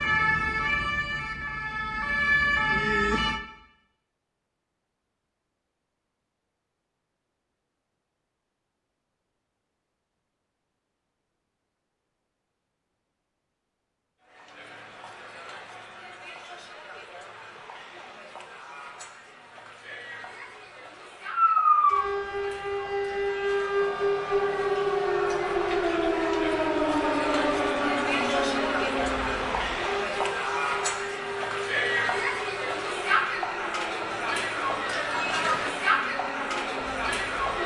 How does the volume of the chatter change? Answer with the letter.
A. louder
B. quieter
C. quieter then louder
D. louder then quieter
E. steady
A.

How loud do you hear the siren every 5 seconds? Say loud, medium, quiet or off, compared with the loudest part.
loud, off, off, off, loud, loud, quiet, quiet.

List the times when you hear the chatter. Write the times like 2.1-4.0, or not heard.
14.2-37.6.